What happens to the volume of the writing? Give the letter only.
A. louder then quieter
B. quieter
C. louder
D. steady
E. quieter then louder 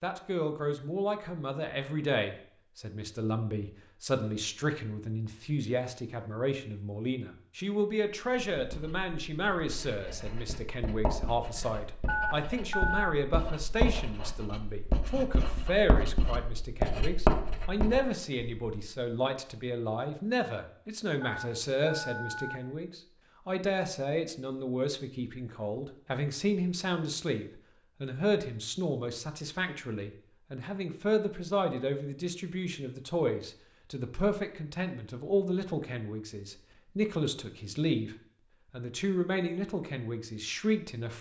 C.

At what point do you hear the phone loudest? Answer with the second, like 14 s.
13 s.